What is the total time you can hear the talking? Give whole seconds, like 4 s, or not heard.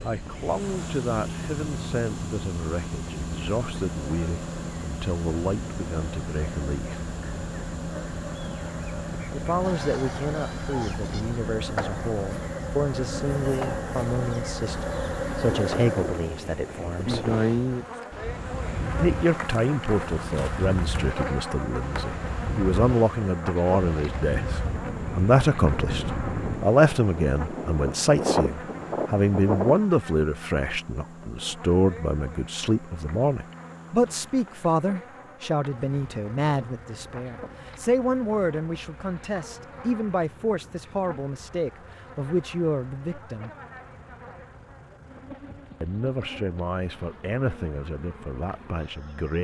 43 s.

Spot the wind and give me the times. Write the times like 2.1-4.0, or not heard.
0.0-29.9.